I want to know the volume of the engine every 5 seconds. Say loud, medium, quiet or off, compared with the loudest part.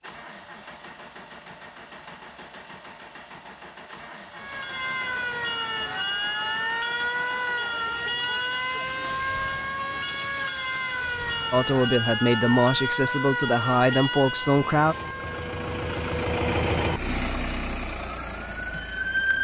quiet, quiet, quiet, loud.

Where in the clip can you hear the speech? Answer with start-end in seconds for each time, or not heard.
11.5-14.9.